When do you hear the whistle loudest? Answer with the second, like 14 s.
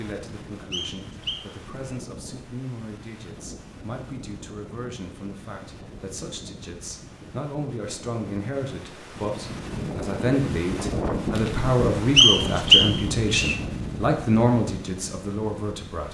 13 s.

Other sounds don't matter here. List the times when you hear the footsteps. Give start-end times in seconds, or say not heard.
not heard.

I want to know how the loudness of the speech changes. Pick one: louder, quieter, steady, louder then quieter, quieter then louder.
louder.